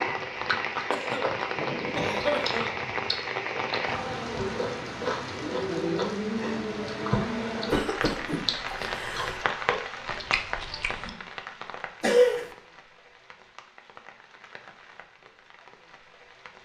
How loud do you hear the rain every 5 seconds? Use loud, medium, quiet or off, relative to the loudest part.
loud, loud, medium, quiet.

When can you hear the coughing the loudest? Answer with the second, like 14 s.
12 s.